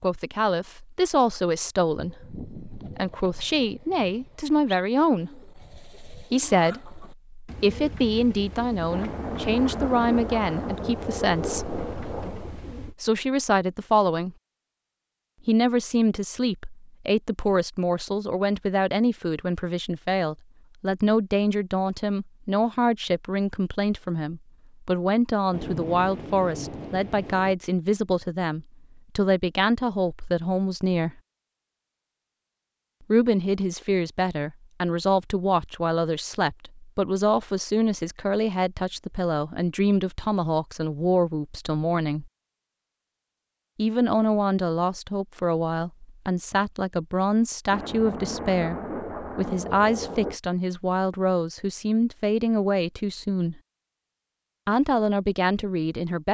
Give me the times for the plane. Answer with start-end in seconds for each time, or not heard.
not heard.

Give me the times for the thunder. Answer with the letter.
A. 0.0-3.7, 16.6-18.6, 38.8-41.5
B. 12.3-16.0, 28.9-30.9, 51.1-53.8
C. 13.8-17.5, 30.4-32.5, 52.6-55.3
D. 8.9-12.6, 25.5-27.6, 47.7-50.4
D.